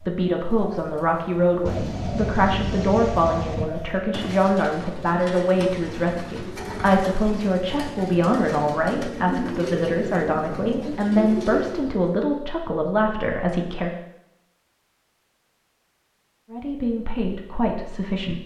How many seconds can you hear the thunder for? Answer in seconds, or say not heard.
2 s.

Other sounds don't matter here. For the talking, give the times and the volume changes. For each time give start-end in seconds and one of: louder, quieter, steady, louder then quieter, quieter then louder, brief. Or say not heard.
0.0-13.9 steady
16.5-18.4 brief.